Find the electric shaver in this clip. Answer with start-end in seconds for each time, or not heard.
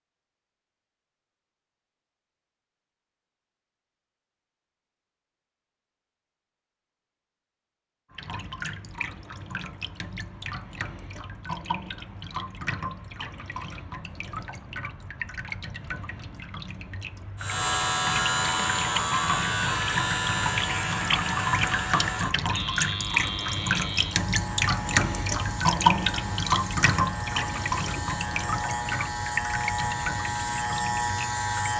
17.4-31.7.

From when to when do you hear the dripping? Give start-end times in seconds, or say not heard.
8.1-31.7.